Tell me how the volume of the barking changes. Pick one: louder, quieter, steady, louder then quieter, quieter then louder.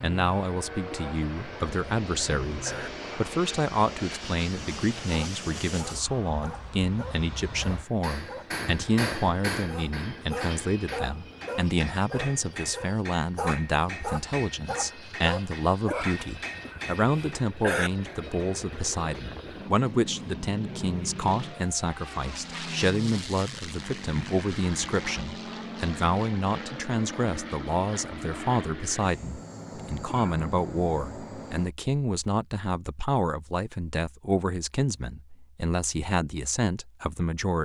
louder.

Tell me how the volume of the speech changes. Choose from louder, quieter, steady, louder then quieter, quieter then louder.
steady.